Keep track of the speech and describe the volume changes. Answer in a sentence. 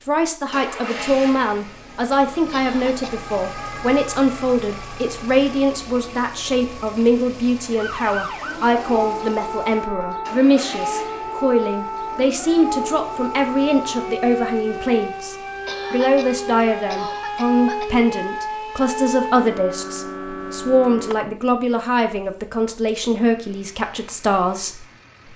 The loudness of the speech stays about the same.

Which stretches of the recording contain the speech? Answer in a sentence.
The speech can be heard from 0.1 to 25.3 s.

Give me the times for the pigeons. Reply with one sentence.
You can't hear the pigeons here.